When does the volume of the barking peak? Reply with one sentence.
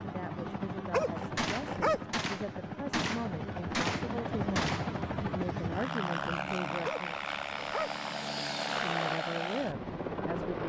The volume of the barking peaks at 2 seconds.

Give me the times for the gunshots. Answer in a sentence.
You can hear the gunshots from 1.4 to 5.0 s.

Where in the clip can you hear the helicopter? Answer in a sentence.
The helicopter can be heard from 0.0 to 10.6 s.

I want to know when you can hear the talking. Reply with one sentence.
The talking can be heard from 0.0 to 7.2 s and from 8.7 to 10.6 s.